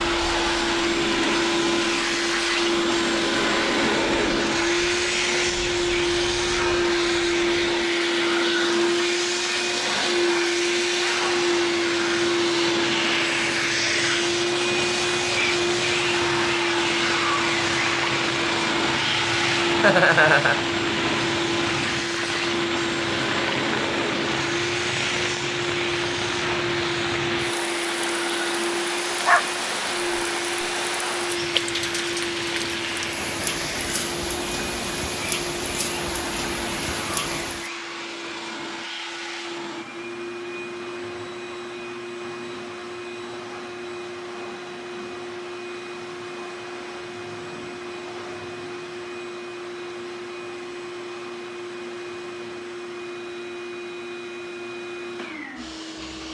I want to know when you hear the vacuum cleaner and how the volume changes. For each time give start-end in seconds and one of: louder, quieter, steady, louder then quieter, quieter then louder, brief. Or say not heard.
0.0-56.2 quieter.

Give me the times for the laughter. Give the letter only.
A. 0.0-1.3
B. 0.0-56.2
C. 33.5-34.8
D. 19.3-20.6
D.